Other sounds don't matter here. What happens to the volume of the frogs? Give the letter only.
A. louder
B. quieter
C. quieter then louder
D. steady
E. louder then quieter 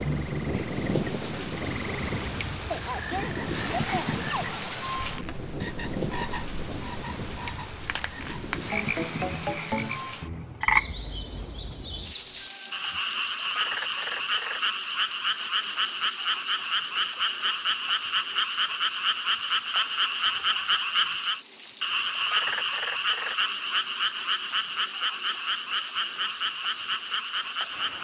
A.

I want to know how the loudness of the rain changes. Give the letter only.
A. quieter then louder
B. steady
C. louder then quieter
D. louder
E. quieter
E.